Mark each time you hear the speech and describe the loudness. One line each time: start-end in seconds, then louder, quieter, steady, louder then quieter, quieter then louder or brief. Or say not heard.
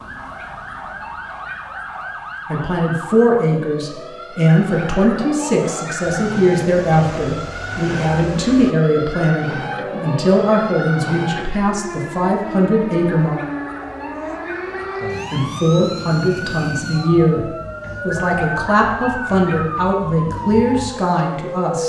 2.5-13.3 steady
15.3-21.8 steady.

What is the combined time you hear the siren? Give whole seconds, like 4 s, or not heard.
22 s.